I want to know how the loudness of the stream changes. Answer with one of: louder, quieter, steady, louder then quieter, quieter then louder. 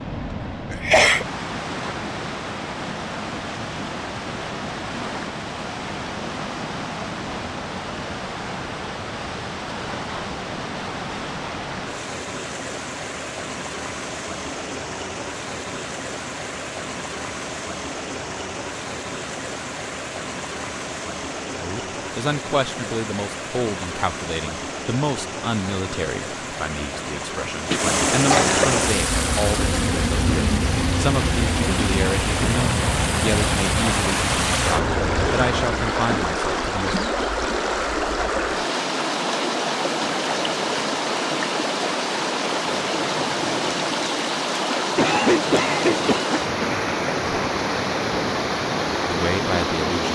louder.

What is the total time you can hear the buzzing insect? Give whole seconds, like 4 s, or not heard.
7 s.